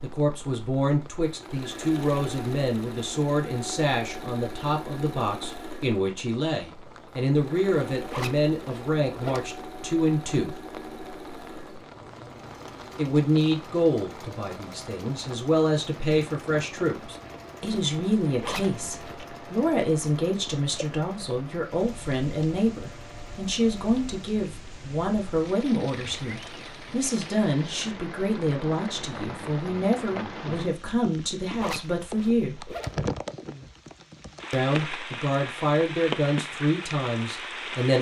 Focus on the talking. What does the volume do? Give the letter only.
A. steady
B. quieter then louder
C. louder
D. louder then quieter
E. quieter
A.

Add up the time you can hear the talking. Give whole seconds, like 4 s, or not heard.
34 s.